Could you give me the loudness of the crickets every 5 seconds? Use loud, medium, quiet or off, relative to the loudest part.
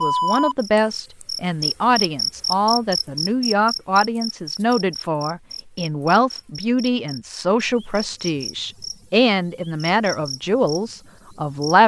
loud, quiet, quiet.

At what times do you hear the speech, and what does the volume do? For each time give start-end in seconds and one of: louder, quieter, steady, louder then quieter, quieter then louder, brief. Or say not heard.
0.0-11.8 steady.